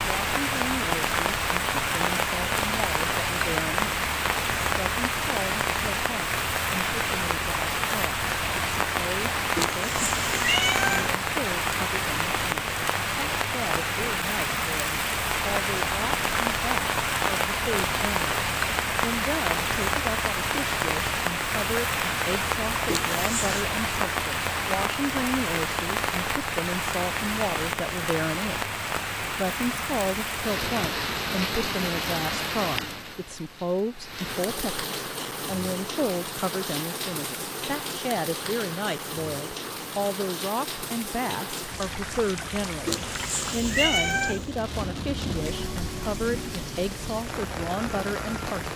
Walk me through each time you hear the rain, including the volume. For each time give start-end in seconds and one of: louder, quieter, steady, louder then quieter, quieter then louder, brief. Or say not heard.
0.0-48.7 quieter.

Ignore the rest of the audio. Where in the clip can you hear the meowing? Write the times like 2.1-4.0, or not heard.
9.6-11.2, 22.9-23.6, 42.9-44.5.